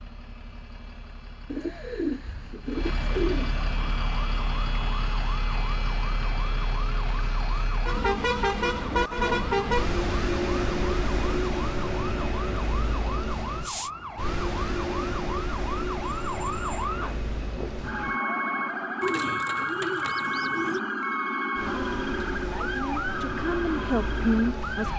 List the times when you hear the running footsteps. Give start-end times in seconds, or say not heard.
not heard.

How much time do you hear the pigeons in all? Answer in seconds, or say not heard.
4 s.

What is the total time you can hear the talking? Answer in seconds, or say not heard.
3 s.